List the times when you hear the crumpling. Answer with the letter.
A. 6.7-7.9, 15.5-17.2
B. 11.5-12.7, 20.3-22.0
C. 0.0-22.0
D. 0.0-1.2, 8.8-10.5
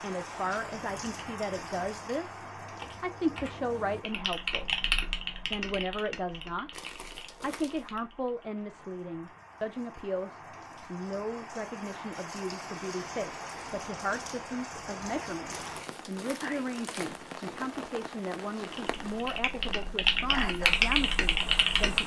A.